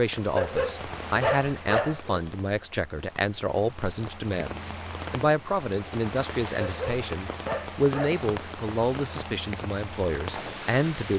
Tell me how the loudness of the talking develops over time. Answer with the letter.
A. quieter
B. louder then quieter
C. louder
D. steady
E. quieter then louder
D.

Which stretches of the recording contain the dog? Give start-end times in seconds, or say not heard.
0.3-2.2, 6.6-8.2.